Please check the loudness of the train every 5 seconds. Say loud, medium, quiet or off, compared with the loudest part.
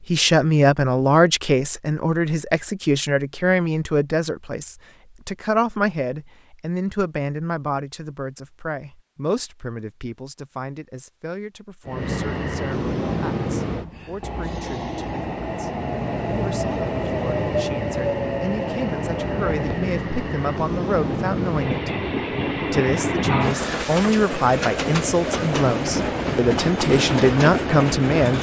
off, off, loud, loud, loud, loud.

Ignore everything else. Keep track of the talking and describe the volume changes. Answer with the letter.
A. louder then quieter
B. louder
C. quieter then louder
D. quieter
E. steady
C.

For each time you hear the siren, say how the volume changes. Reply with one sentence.
You can't hear the siren here.